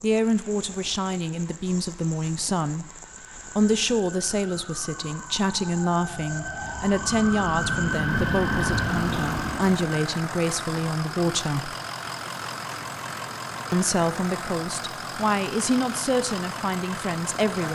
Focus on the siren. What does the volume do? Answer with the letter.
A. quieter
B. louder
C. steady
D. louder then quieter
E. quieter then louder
B.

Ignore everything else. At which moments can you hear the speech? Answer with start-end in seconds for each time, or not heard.
0.0-2.9, 3.5-11.8, 13.7-17.6.